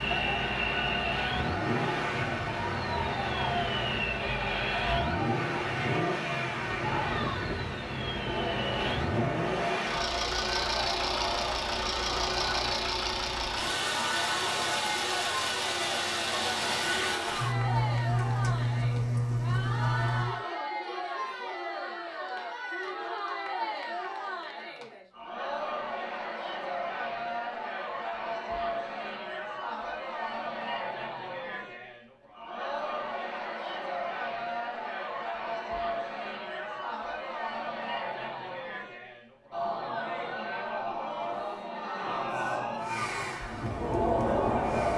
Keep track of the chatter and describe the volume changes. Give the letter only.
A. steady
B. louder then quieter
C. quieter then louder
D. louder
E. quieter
A.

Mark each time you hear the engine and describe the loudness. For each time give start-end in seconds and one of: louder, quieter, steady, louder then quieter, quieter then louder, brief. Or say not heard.
0.0-20.4 steady
42.7-44.9 brief.